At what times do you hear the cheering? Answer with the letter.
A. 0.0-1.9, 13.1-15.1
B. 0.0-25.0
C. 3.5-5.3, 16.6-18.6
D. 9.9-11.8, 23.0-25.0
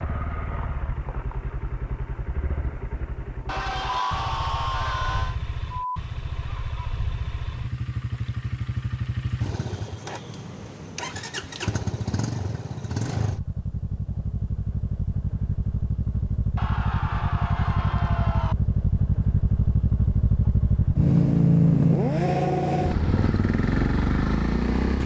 C.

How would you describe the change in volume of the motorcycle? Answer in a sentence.
The volume of the motorcycle goes up.